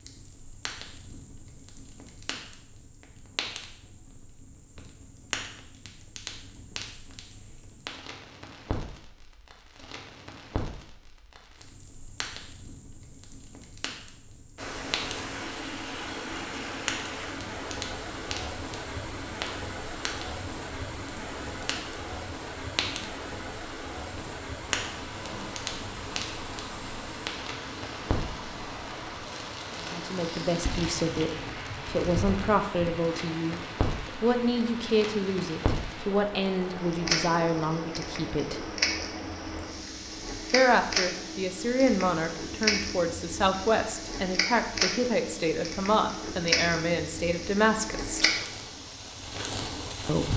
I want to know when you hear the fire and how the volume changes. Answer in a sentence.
You can hear the fire from 0.0 to 50.3 s, getting louder.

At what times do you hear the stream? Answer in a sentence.
You can hear the stream from 14.6 to 50.2 s.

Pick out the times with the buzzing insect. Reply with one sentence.
You can't hear the buzzing insect here.